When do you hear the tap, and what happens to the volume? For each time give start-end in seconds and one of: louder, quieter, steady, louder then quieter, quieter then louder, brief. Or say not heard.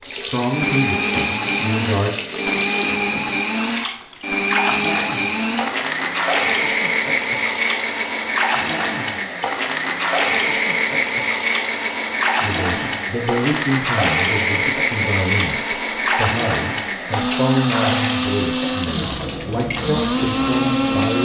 0.0-21.2 steady.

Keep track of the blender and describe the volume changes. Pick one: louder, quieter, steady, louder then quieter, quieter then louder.
steady.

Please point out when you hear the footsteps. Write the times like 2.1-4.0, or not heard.
not heard.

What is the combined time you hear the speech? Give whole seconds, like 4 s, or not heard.
11 s.